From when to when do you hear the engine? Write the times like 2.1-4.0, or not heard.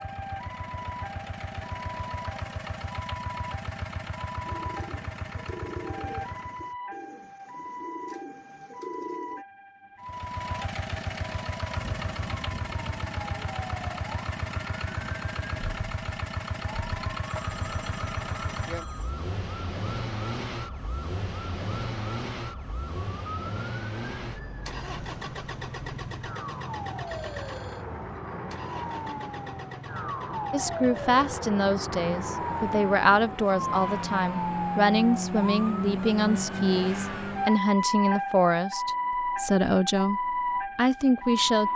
0.0-6.8, 10.0-37.6.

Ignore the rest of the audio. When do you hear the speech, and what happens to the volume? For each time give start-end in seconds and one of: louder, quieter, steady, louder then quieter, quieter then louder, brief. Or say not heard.
30.5-41.7 steady.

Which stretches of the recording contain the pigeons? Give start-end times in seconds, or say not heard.
4.4-9.4.